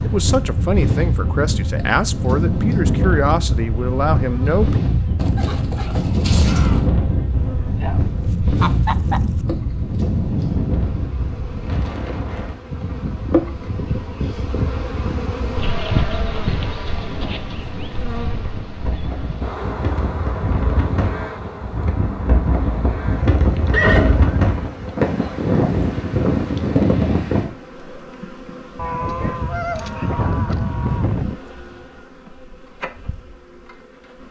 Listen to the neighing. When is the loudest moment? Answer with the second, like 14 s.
24 s.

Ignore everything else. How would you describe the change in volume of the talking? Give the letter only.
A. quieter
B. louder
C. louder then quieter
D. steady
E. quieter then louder
D.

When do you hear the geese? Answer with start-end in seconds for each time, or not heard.
8.2-9.4, 28.8-31.4.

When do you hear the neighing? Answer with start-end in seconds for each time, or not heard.
5.2-6.9, 23.7-24.4.